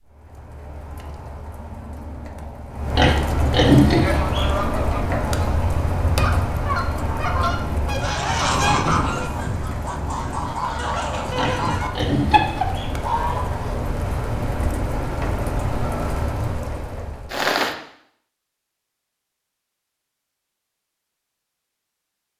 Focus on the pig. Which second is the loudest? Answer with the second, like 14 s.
4 s.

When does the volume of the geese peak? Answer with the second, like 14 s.
9 s.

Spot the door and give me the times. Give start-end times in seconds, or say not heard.
not heard.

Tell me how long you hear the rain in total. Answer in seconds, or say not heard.
18 s.